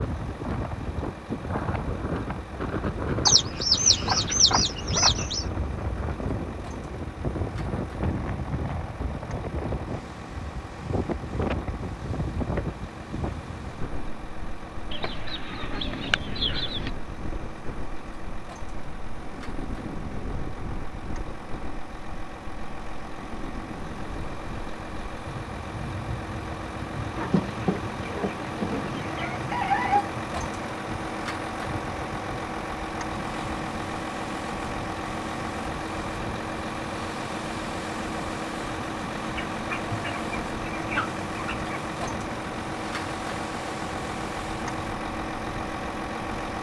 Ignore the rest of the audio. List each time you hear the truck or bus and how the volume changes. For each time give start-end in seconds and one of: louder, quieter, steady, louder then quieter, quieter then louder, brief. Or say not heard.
0.0-46.5 louder.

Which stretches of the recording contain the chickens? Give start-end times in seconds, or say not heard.
3.2-5.5, 14.9-16.9, 27.1-30.1, 39.5-41.8.